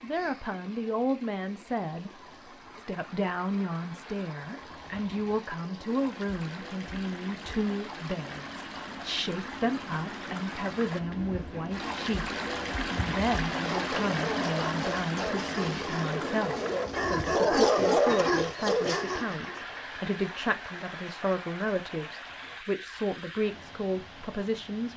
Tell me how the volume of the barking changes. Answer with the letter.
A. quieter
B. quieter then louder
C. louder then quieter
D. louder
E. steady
D.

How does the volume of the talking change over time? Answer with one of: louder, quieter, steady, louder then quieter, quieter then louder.
steady.